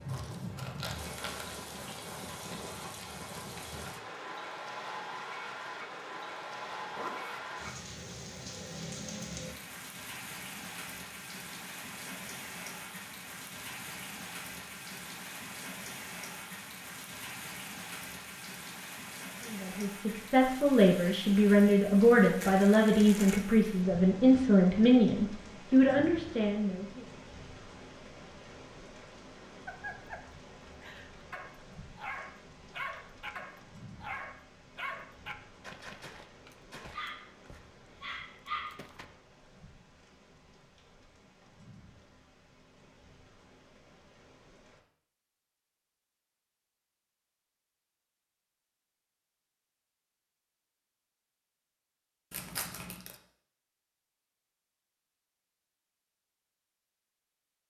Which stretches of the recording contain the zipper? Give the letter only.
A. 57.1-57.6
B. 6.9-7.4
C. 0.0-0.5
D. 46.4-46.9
B.